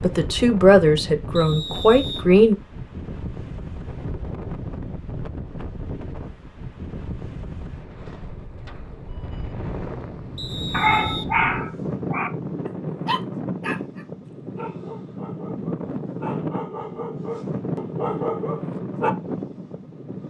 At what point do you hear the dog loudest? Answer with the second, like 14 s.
11 s.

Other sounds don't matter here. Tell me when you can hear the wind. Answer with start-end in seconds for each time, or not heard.
0.0-20.2.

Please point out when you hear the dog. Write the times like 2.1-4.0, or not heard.
10.7-19.1.